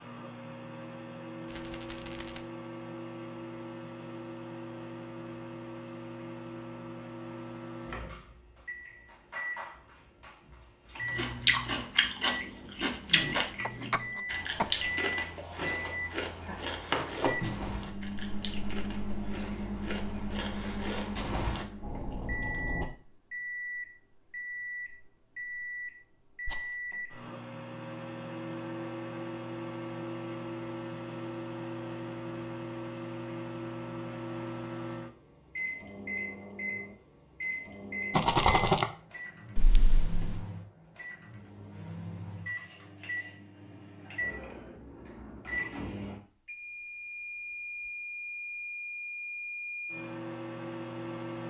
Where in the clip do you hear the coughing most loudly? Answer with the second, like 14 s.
14 s.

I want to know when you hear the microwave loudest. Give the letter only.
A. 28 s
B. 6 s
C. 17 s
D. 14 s
C.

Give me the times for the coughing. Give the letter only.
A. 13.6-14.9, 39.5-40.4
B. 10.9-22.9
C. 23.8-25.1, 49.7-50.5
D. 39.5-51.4
A.